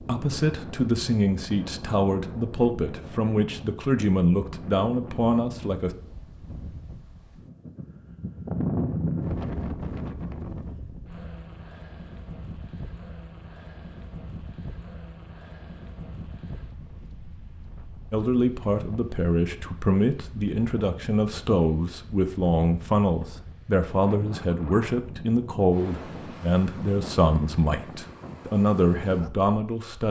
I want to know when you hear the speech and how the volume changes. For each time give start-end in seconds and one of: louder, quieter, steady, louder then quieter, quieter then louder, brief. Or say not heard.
0.0-5.9 steady
18.1-30.0 steady.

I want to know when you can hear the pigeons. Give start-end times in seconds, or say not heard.
not heard.